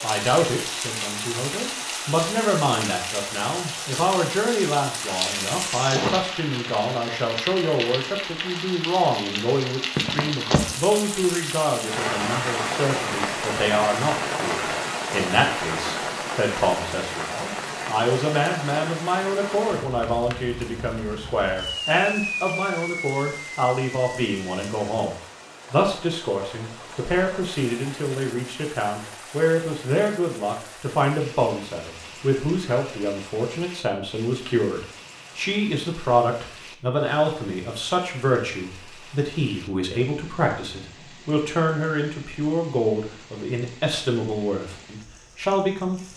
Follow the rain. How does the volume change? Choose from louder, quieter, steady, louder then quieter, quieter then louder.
quieter.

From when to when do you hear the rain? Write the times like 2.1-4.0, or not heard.
0.0-46.1.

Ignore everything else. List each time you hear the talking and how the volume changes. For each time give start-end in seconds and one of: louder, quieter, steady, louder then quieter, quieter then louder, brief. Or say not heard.
0.0-46.1 steady.